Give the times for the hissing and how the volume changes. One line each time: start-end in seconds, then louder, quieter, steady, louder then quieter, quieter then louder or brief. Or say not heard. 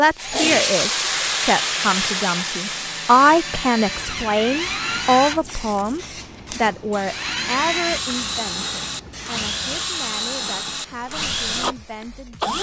0.0-12.5 quieter.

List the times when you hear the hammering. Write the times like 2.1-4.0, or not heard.
not heard.